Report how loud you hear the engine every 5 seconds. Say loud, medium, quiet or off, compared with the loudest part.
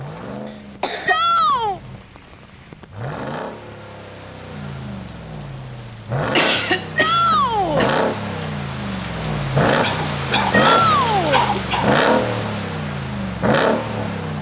quiet, loud, loud.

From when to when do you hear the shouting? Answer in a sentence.
The shouting can be heard from 1.1 to 1.8 s, from 7.0 to 7.9 s and from 10.5 to 11.5 s.